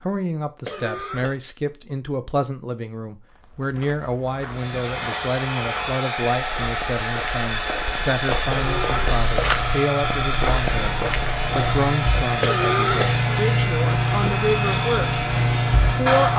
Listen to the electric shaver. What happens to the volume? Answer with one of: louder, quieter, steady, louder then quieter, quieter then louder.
louder.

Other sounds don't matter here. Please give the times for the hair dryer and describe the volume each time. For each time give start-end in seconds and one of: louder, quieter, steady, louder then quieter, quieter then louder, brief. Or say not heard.
4.5-16.3 steady.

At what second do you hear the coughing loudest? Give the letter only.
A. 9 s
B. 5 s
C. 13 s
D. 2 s
C.